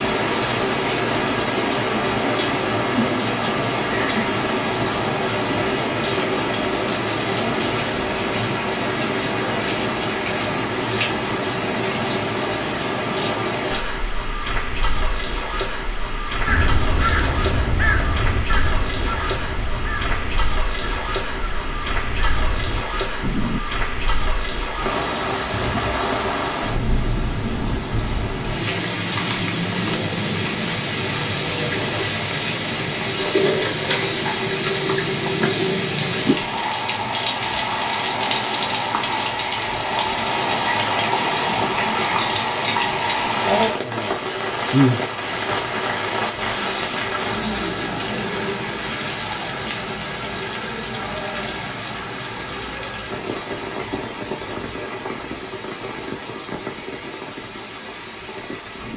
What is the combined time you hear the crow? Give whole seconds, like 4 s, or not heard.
7 s.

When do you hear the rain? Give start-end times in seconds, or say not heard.
0.0-58.9.